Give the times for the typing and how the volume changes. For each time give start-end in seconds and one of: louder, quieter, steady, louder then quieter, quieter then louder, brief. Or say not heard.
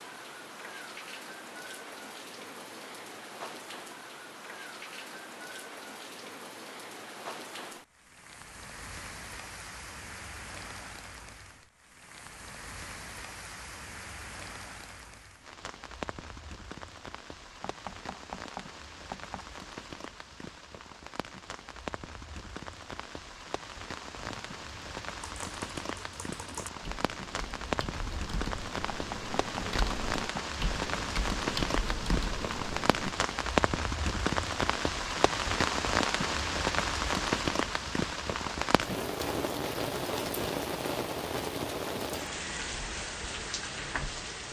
24.2-33.1 louder.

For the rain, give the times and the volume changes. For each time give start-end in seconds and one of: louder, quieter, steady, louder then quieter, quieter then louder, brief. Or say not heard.
0.0-44.4 louder.